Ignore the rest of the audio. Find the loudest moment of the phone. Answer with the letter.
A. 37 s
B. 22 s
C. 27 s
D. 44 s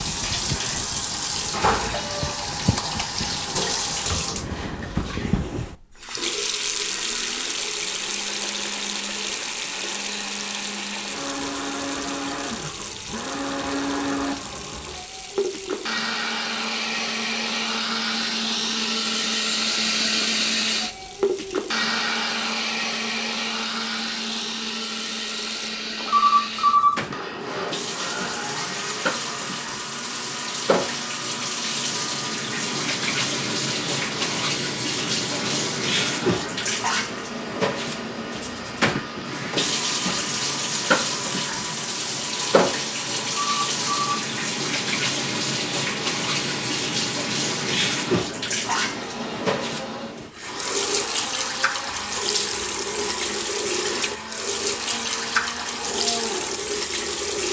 C.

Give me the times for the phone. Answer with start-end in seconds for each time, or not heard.
26.1-27.1, 43.3-44.3.